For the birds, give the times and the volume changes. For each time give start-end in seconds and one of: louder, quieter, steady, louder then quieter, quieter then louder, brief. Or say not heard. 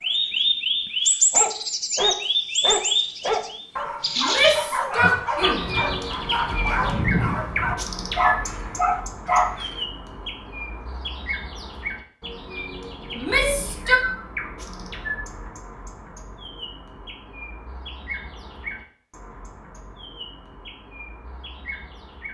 0.0-22.2 quieter.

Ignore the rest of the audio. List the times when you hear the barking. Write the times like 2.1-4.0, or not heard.
1.3-9.7.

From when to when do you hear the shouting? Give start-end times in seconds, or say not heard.
4.2-5.6, 13.2-14.0.